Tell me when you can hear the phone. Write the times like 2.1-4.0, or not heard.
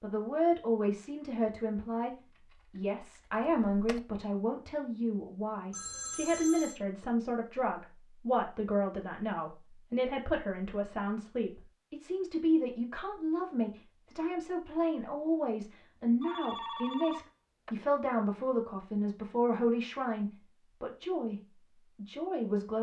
5.7-6.8, 16.2-17.8.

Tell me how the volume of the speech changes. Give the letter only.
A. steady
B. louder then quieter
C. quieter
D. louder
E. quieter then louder
A.